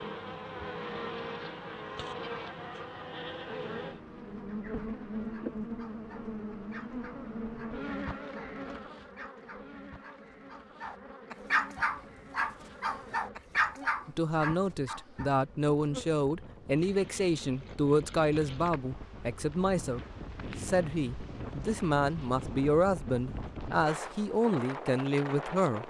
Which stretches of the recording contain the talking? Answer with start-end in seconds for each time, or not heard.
14.1-25.8.